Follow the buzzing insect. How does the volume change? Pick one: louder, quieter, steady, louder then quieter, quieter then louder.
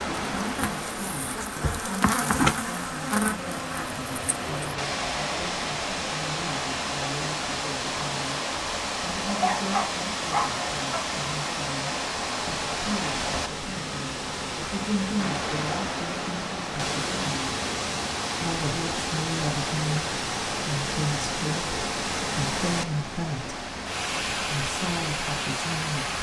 louder then quieter.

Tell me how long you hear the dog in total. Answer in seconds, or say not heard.
2 s.